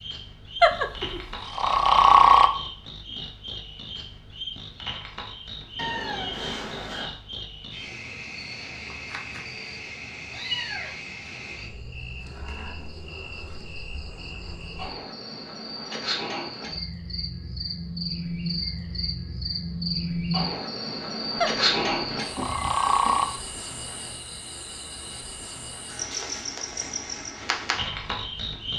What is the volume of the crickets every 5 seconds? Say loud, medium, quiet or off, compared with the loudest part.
medium, medium, medium, loud, loud, loud.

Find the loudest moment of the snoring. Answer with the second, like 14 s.
2 s.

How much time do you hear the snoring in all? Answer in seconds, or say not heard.
4 s.